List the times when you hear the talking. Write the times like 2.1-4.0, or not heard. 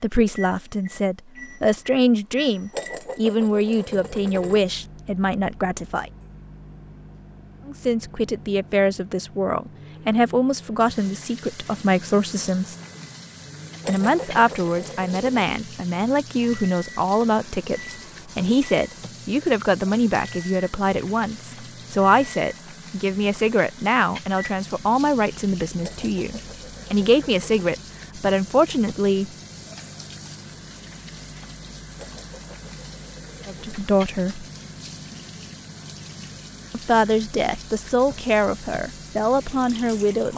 0.0-6.1, 7.7-12.8, 13.8-29.3, 33.5-34.5, 36.7-40.3.